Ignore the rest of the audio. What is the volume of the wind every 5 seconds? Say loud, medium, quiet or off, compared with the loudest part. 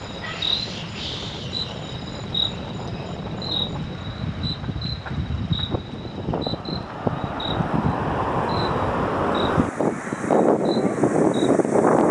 quiet, medium, loud.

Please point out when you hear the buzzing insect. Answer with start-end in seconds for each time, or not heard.
0.0-12.0.